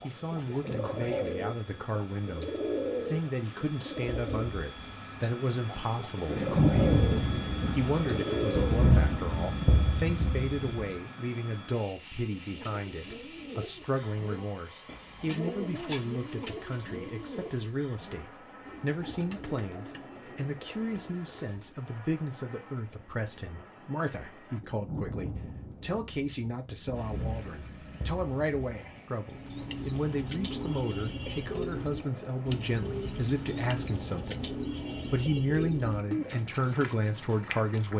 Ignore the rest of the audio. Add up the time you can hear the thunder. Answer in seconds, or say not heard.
9 s.